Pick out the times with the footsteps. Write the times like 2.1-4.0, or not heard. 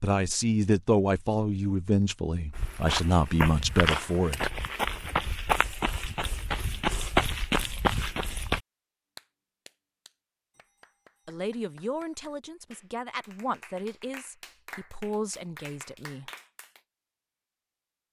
2.5-8.6.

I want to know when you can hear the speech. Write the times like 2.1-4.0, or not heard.
0.0-4.5, 11.2-16.3.